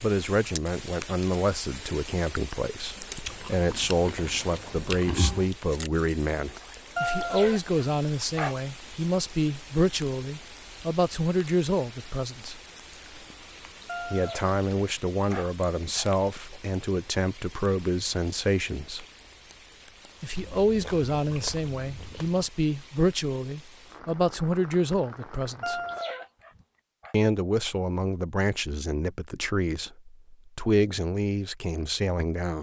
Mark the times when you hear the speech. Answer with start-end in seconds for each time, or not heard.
0.0-12.6, 14.1-19.1, 20.2-25.8, 27.1-32.5.